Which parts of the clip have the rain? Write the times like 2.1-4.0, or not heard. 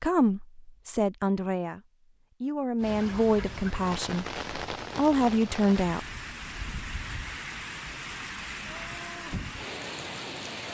2.8-10.6.